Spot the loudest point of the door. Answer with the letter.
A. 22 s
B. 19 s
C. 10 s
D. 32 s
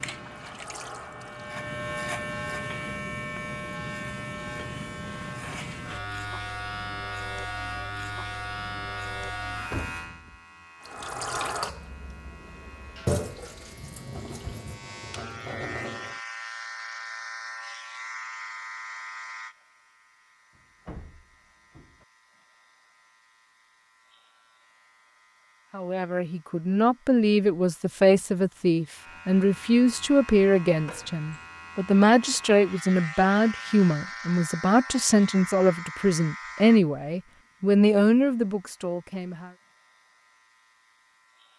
C.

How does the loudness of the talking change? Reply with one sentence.
The loudness of the talking stays about the same.